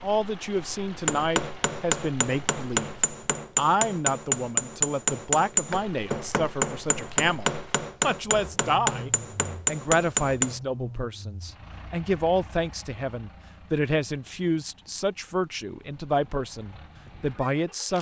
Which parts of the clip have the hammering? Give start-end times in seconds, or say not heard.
1.1-10.6.